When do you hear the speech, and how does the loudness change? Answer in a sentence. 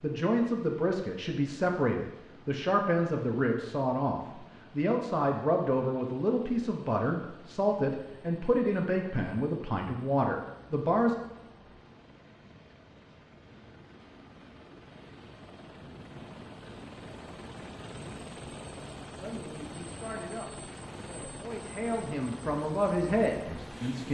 You can hear the speech from 0.0 to 11.2 s, at a steady volume; and from 19.1 to 24.0 s, getting louder.